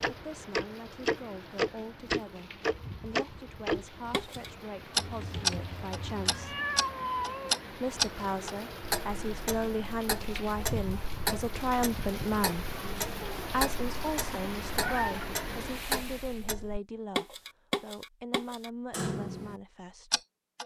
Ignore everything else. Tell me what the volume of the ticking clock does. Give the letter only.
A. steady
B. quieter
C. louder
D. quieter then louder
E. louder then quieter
B.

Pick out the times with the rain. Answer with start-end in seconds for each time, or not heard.
0.0-16.5.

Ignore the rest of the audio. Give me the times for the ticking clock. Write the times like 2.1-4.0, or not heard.
0.0-20.6.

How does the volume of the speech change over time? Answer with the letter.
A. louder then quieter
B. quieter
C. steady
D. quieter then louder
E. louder
A.